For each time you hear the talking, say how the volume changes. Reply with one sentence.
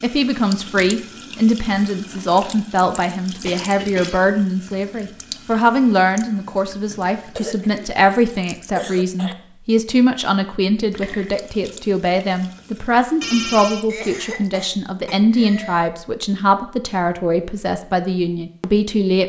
The talking can be heard from 0.0 to 19.2 s, at a steady volume.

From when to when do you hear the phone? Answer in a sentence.
You can hear the phone from 13.2 to 13.8 s.